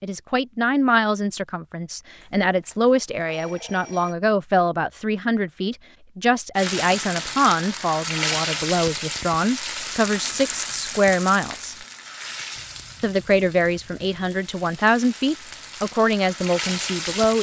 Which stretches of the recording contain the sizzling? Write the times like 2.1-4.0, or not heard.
6.5-17.3.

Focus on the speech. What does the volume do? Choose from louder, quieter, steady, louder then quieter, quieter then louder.
steady.